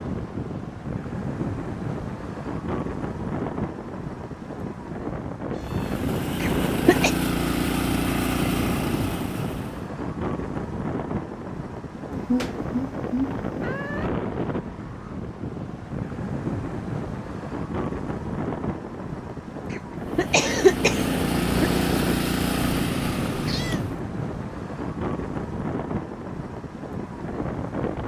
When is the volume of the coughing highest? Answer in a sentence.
The volume of the coughing peaks at 21 seconds.